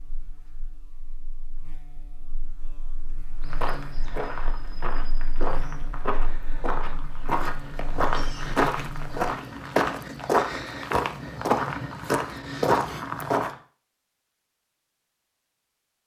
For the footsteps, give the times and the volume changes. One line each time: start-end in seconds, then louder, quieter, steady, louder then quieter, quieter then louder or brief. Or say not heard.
3.4-13.6 louder.